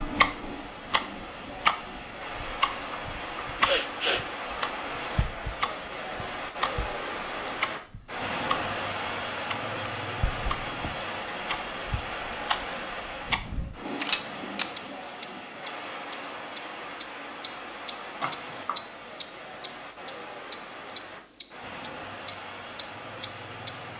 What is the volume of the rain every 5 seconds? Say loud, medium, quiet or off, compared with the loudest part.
loud, loud, loud, medium, medium.